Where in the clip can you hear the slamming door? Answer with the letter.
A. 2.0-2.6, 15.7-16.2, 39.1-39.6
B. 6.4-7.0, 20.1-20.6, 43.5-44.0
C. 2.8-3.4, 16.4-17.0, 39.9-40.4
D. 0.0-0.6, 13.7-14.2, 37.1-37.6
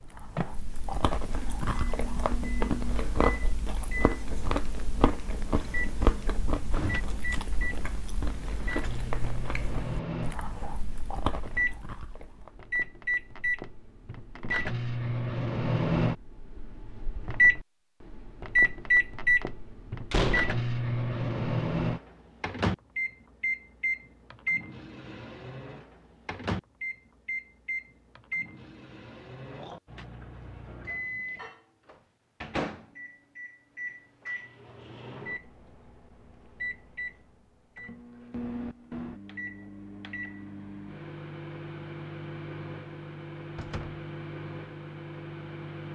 B.